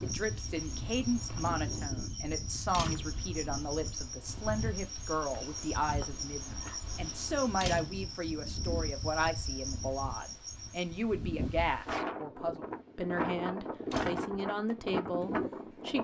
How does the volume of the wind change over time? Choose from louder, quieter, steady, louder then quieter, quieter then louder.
louder.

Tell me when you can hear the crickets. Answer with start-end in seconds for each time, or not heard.
0.0-11.0.